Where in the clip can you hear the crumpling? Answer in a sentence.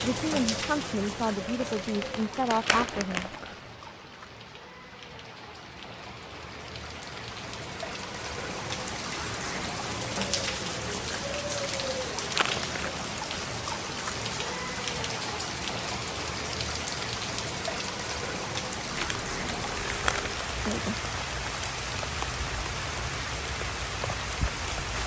You can hear the crumpling from 1.6 to 3.5 s, from 12.3 to 13.0 s and from 18.9 to 20.4 s.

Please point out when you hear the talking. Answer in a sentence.
You can hear the talking from 0.0 to 3.3 s.